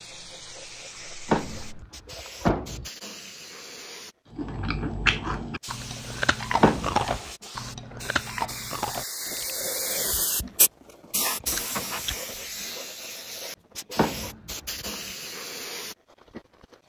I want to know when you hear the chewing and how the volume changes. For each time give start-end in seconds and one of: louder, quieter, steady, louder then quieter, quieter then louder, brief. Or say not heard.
4.3-12.6 quieter then louder.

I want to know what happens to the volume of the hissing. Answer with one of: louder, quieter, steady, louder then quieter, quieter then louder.
louder then quieter.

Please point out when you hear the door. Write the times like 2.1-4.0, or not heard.
1.2-2.9, 6.6-7.0, 13.9-14.9.